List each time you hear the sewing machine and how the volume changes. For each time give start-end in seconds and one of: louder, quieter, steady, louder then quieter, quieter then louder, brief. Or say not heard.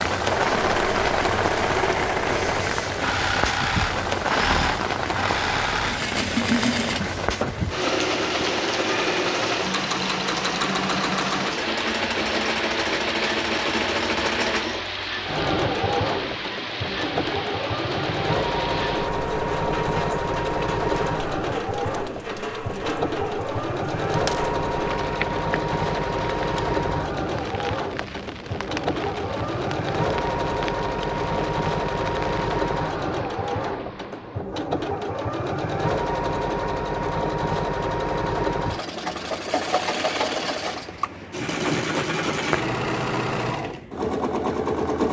0.1-45.0 steady.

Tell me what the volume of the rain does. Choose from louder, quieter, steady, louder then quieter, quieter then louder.
quieter.